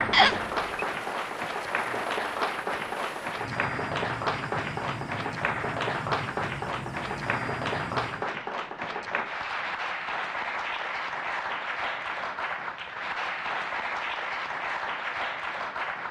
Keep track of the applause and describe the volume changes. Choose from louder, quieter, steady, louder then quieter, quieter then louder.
steady.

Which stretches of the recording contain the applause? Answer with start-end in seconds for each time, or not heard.
0.0-16.0.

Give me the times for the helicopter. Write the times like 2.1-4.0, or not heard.
0.0-8.3.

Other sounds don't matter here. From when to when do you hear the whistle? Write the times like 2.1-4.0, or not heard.
0.1-0.8.